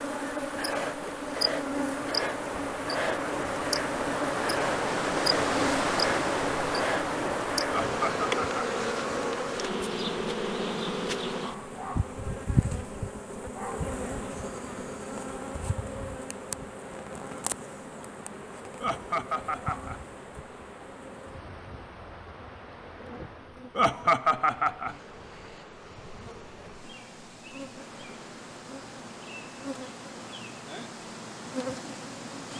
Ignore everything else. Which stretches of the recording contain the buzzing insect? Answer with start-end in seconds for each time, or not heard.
0.0-32.5.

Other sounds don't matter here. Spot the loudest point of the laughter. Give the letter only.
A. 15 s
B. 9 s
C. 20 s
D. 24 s
D.